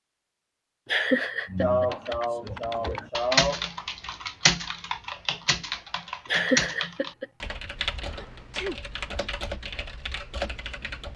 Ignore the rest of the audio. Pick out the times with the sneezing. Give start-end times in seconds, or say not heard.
1.6-3.6, 8.2-8.8.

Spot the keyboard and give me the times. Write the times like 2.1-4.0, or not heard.
1.4-11.1.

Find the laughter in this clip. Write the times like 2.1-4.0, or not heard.
0.8-1.9, 6.2-7.2.